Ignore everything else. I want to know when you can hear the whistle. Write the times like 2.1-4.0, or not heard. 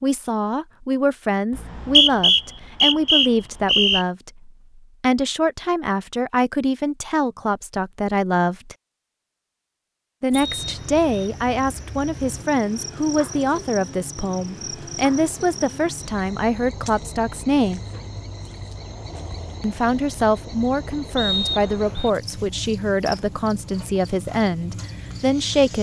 1.6-4.0, 10.3-11.2, 21.1-22.1.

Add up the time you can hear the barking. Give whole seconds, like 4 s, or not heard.
not heard.